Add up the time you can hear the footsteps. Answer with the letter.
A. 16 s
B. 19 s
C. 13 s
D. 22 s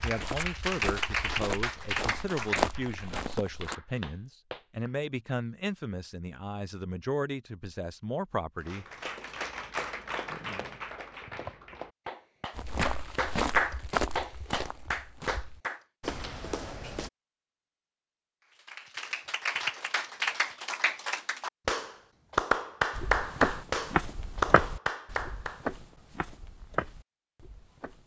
C.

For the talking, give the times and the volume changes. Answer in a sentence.
You can hear the talking from 0.0 to 8.8 s, at a steady volume.